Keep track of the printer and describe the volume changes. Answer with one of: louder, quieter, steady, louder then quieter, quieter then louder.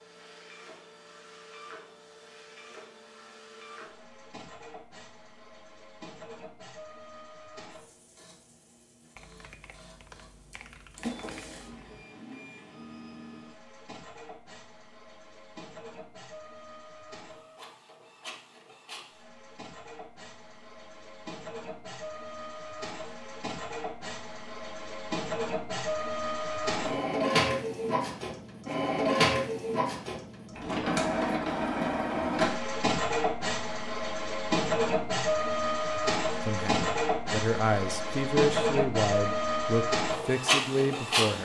louder.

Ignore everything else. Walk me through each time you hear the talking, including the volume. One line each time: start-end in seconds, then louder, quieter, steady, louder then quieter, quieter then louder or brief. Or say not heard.
36.5-41.3 steady.